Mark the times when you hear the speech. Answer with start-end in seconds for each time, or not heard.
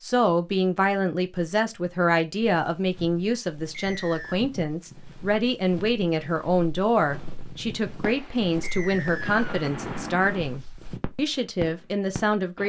0.0-12.6.